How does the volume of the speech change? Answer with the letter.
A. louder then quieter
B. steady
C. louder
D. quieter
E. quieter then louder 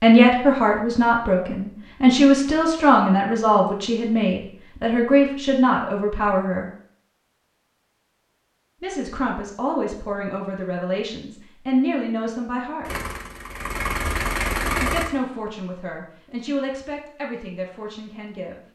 D.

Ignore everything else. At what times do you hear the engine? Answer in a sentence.
The engine can be heard from 12.8 to 15.1 s.